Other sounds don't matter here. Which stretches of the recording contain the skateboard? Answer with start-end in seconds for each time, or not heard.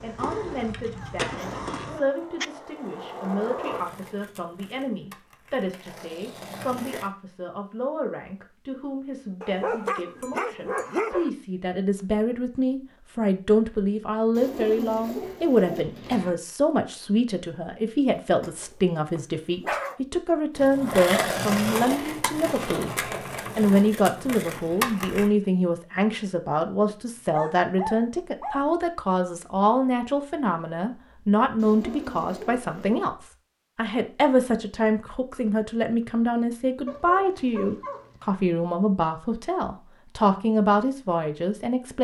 0.0-7.1, 20.6-25.3.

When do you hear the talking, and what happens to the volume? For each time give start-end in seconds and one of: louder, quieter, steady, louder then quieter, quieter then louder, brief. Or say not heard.
0.0-22.9 louder
23.6-41.9 steady.